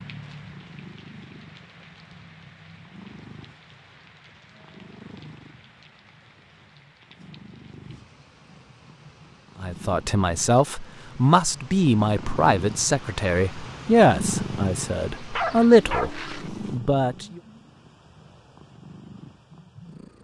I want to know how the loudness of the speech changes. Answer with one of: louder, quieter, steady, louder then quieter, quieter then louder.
quieter then louder.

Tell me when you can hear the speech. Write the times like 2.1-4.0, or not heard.
9.6-17.4.